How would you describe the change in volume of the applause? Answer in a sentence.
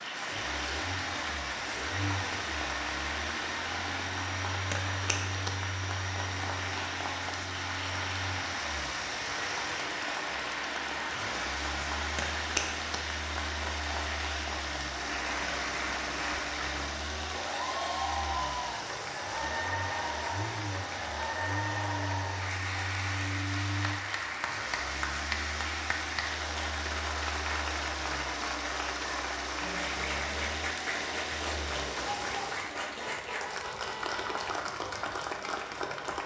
The volume of the applause stays about the same.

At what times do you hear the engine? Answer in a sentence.
You can hear the engine from 0.0 to 32.8 s.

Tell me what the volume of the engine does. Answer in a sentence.
The volume of the engine stays about the same.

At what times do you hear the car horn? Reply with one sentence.
The car horn can be heard from 33.0 to 34.6 s.